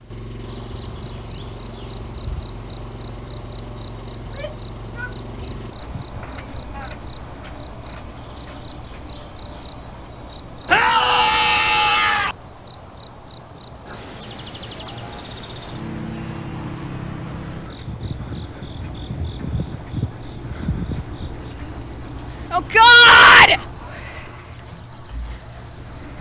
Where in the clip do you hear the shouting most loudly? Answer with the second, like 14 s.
23 s.